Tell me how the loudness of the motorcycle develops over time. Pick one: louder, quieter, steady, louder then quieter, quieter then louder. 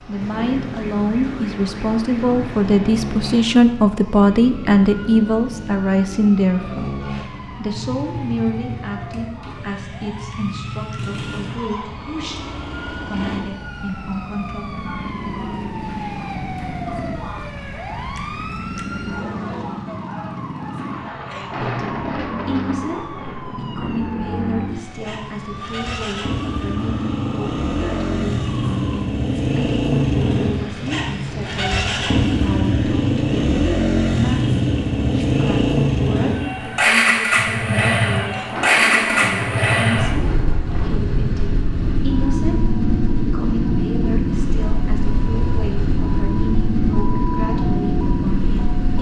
louder.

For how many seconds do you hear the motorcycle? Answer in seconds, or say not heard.
49 s.